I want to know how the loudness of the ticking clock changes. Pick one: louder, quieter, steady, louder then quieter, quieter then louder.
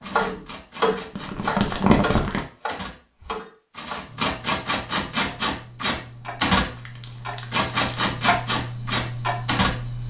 quieter then louder.